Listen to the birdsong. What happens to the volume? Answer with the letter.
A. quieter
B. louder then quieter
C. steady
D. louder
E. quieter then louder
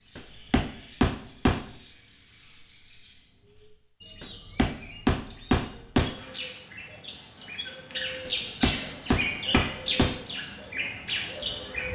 D.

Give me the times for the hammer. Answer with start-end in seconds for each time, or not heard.
0.1-1.6, 4.2-6.2, 8.2-10.2.